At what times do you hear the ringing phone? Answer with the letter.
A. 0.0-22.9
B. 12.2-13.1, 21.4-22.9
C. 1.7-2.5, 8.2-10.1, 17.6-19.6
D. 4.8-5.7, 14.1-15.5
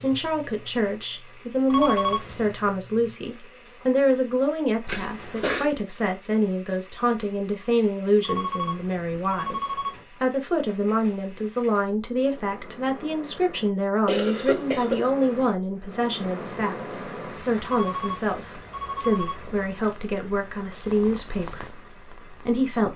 C.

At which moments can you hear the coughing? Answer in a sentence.
You can hear the coughing from 4.8 to 5.7 s and from 14.1 to 15.5 s.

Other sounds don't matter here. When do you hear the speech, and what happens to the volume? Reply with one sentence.
The speech can be heard from 0.0 to 22.9 s, at a steady volume.